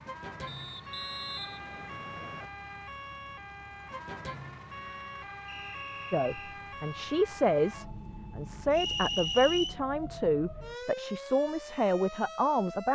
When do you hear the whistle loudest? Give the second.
9 s.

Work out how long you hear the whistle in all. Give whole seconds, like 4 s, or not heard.
4 s.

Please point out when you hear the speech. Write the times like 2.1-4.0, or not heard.
6.1-12.9.